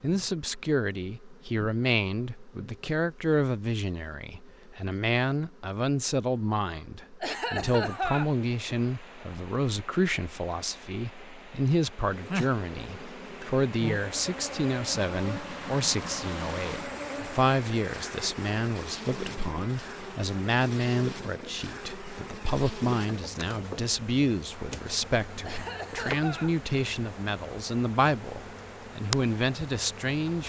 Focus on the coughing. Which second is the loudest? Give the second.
8 s.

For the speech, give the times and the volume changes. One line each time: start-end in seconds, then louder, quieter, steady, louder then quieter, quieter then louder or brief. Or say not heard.
0.0-30.4 steady.